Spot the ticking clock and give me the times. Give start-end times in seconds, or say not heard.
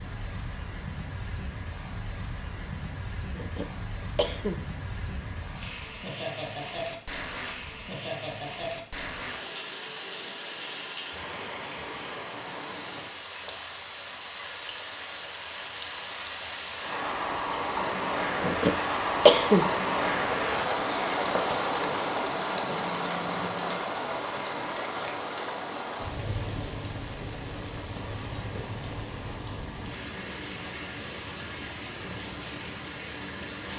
not heard.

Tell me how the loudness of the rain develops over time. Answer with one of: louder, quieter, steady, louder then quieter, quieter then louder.
louder then quieter.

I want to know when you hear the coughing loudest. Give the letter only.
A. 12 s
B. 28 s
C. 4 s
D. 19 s
D.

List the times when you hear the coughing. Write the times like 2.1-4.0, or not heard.
3.4-4.7, 18.4-19.7.